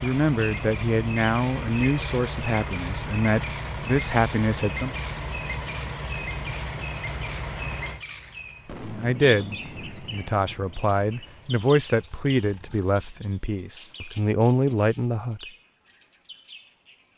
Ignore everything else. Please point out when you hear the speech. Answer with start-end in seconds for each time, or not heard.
0.0-4.9, 8.8-15.4.